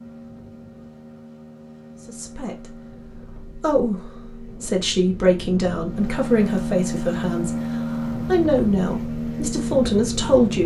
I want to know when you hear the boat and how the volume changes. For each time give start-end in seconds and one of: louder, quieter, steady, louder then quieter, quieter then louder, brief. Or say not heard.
0.0-10.6 louder.